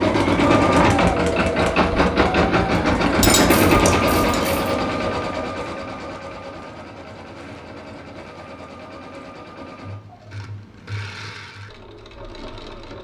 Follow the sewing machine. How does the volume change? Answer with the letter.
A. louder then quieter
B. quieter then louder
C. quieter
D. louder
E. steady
C.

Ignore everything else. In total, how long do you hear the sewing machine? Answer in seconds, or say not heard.
13 s.